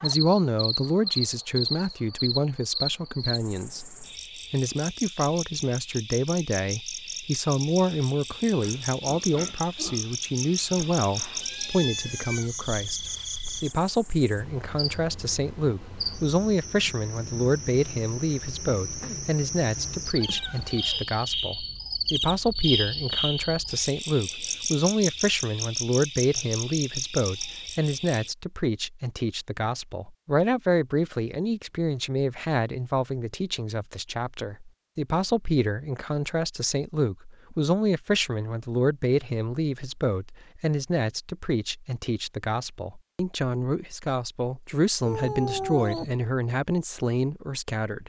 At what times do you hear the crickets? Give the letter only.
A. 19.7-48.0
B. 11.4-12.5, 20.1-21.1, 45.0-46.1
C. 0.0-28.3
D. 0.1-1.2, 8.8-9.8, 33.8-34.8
C.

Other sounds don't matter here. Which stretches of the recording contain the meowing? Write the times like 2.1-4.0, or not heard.
11.4-12.5, 20.1-21.1, 45.0-46.1.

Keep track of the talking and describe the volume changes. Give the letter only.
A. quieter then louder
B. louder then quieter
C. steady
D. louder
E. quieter
C.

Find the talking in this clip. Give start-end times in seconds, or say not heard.
0.0-3.9, 4.5-48.0.